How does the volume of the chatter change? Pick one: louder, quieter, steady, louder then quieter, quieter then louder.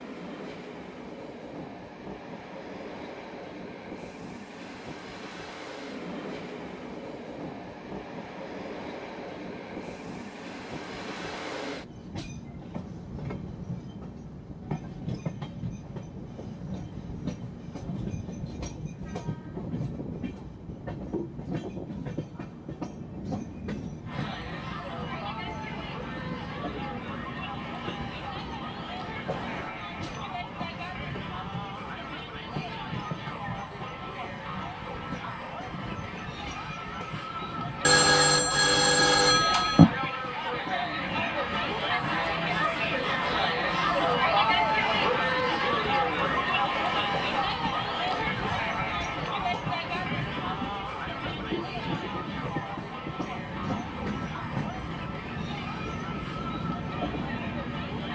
louder then quieter.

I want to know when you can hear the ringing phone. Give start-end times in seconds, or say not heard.
37.8-39.9.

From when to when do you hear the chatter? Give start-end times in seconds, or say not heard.
24.1-58.1.